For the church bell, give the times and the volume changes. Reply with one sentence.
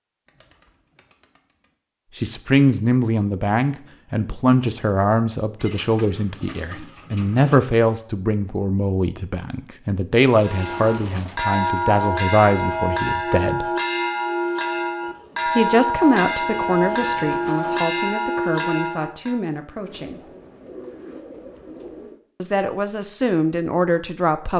You can hear the church bell from 10.4 to 19.4 s, at a steady volume.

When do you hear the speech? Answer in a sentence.
The speech can be heard from 2.1 to 13.7 s, from 15.4 to 20.2 s and from 22.4 to 24.5 s.